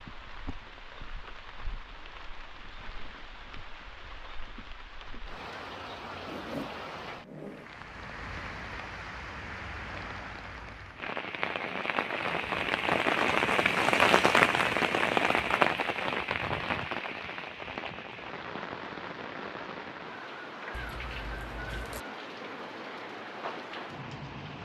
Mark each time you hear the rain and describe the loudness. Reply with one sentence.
The rain can be heard from 0.0 to 24.5 s, getting louder then quieter.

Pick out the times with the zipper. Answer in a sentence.
The zipper can be heard from 6.2 to 7.7 s and from 20.7 to 22.1 s.